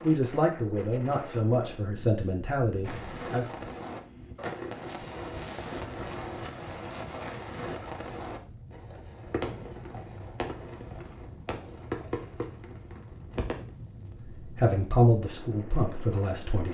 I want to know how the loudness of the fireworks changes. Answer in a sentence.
The loudness of the fireworks stays about the same.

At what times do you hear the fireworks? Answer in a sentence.
The fireworks can be heard from 2.9 to 13.7 s.